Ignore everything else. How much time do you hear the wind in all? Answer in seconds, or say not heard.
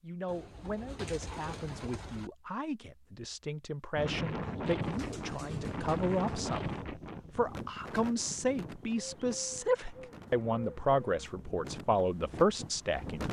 9 s.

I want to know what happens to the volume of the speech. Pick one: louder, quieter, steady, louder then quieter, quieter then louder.
louder.